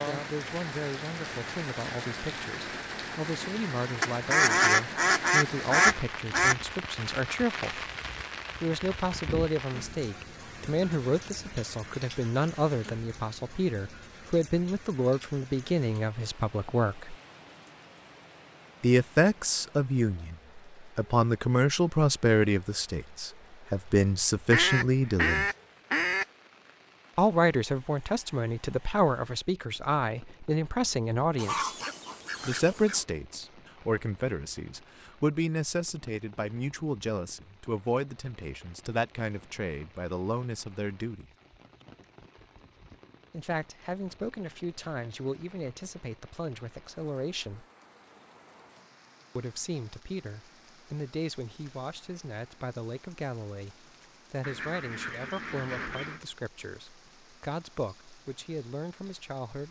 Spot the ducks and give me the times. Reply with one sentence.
The ducks can be heard from 4.0 to 6.5 s, from 24.5 to 26.2 s, from 31.4 to 33.0 s and from 54.4 to 56.2 s.